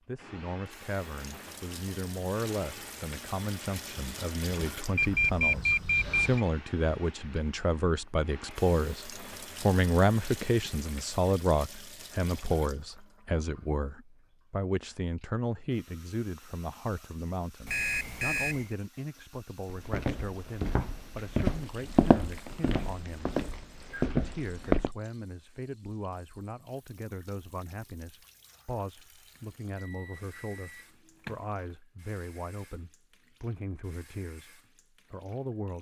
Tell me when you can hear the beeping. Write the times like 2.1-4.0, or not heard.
5.0-6.5, 17.6-18.8, 29.8-31.4.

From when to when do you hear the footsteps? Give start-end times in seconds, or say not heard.
19.6-24.9.